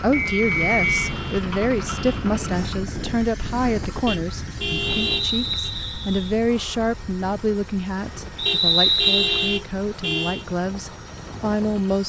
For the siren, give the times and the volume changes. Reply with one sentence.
The siren can't be heard in this clip.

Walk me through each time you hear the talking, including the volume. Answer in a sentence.
The talking can be heard from 0.0 to 12.0 s, at a steady volume.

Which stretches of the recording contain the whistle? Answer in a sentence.
The whistle can be heard from 0.1 to 1.1 s, from 5.0 to 6.3 s and from 8.3 to 9.6 s.